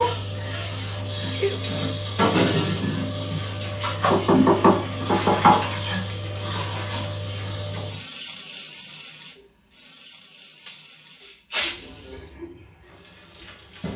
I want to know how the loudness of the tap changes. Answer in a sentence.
The loudness of the tap goes down.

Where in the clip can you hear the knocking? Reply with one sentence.
The knocking can be heard from 4.1 to 5.6 s.